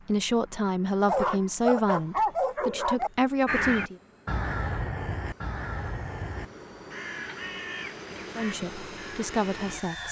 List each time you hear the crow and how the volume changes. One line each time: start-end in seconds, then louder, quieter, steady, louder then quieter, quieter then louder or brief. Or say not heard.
3.5-9.8 quieter.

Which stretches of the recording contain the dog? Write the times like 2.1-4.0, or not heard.
1.1-3.1.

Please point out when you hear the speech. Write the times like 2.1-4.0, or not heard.
0.1-4.0, 8.3-10.0.